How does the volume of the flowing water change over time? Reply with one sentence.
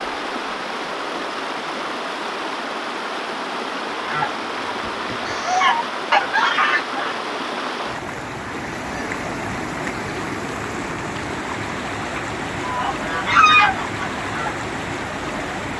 The volume of the flowing water stays about the same.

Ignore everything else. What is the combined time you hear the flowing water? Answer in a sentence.
The flowing water can be heard for 16 seconds in total.